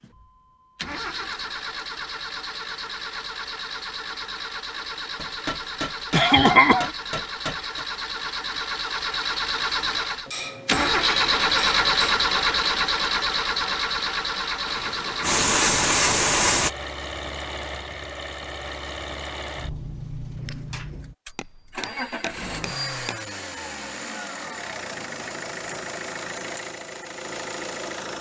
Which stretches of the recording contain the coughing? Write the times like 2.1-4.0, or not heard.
6.1-6.9.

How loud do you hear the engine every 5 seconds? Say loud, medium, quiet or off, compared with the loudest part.
medium, medium, loud, medium, medium, medium.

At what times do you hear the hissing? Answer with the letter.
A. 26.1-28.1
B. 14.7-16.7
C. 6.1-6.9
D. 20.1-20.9
B.